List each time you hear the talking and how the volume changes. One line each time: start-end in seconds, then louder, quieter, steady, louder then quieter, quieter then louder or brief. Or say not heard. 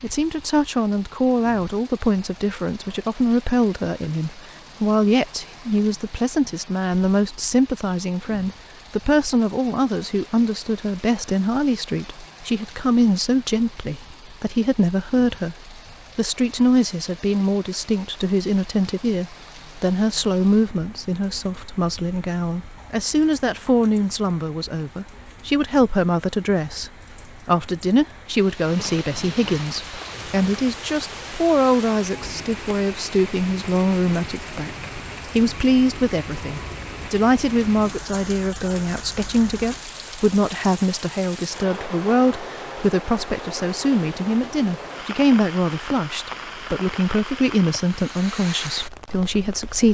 0.0-49.9 steady.